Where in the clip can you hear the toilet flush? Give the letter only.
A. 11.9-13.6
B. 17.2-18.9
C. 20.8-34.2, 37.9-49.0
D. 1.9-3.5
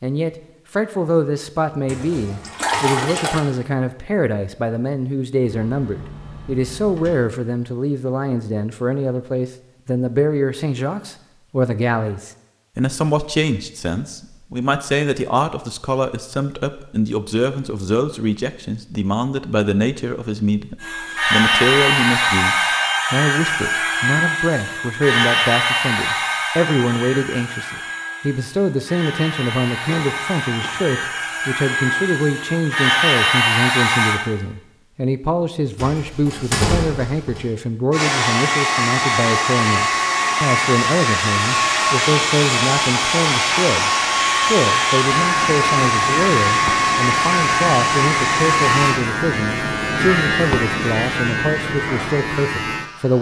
D.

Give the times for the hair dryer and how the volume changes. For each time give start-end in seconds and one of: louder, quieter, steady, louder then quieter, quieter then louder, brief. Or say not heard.
20.8-34.2 quieter then louder
37.9-49.0 steady.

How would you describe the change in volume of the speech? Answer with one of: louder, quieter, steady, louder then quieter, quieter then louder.
steady.